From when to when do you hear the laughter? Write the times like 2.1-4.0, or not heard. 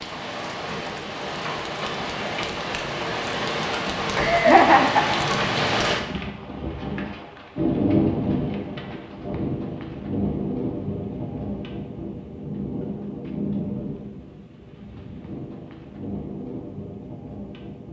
4.2-5.2.